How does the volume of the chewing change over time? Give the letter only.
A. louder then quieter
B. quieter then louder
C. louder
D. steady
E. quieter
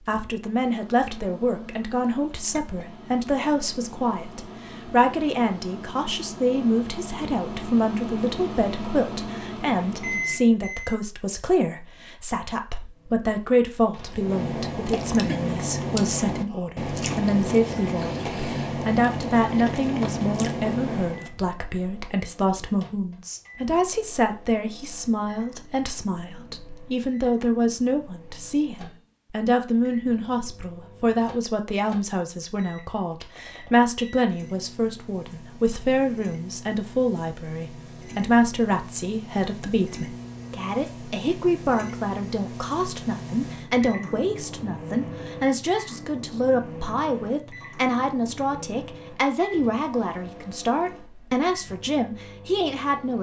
D.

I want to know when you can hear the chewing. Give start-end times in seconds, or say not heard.
14.1-21.3.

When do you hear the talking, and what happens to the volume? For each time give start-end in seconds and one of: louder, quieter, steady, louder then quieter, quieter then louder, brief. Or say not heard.
0.1-53.1 steady.